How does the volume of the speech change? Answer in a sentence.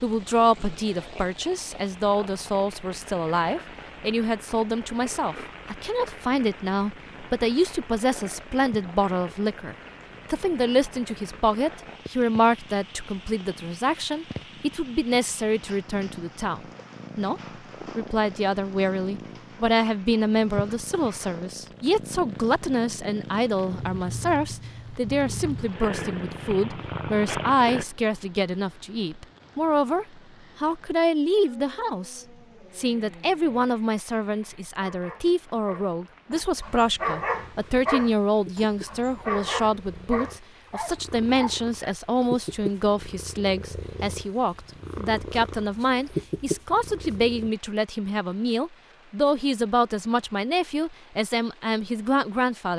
The loudness of the speech stays about the same.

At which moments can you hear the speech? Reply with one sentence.
The speech can be heard from 0.0 to 52.7 s.